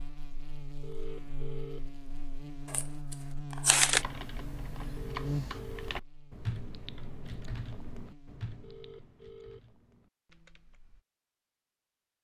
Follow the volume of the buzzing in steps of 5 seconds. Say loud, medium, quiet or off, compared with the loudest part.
loud, loud, off.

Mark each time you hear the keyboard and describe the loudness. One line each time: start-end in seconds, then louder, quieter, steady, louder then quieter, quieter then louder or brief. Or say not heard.
4.0-11.0 quieter.